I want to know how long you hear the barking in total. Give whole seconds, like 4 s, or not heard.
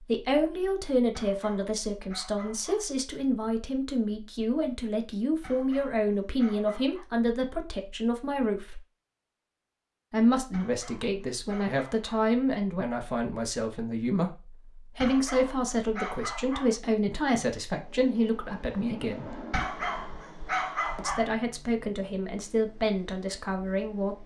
9 s.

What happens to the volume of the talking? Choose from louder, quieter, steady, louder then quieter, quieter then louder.
steady.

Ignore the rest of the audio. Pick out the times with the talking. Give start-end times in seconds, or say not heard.
0.1-8.8, 10.1-19.4, 20.9-24.2.